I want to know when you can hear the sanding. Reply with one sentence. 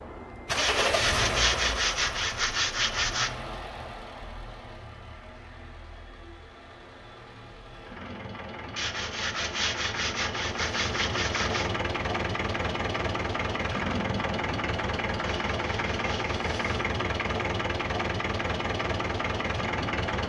You can hear the sanding from 0.6 to 3.3 s, from 8.8 to 11.7 s and from 15.2 to 16.8 s.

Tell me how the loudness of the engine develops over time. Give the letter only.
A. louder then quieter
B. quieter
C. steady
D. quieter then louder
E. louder
D.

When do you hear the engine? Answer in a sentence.
The engine can be heard from 0.0 to 20.2 s.